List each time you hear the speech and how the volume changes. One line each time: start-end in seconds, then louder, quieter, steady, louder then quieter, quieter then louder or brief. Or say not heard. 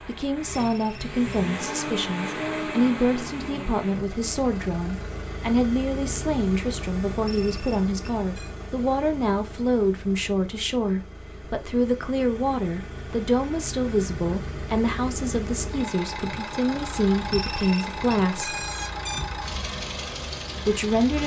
0.1-18.6 steady
20.6-21.2 brief.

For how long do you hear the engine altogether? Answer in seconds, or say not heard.
21 s.